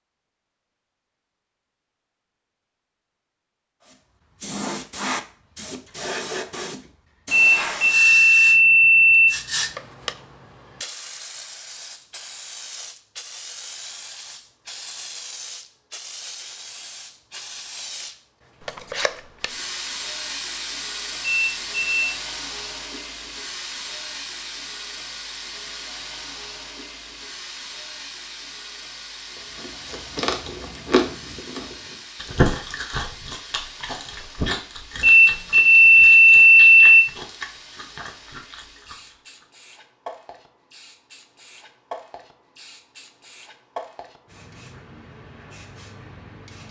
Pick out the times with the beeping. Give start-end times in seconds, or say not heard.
7.3-9.3, 21.2-22.1, 35.0-37.0.